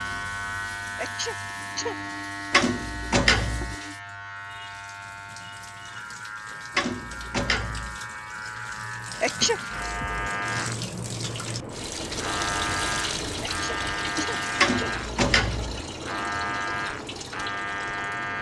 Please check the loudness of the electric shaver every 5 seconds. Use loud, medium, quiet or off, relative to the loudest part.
loud, medium, loud, loud.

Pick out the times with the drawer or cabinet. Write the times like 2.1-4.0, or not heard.
2.5-3.8, 6.8-8.0, 14.6-15.8.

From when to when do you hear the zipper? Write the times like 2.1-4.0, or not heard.
not heard.